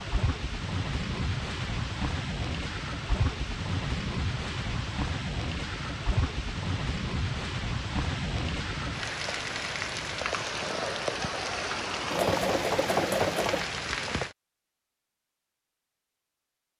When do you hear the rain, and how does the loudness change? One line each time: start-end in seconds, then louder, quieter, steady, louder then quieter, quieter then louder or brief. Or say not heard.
0.0-14.3 steady.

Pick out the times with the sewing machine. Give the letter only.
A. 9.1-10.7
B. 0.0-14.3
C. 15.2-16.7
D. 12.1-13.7
D.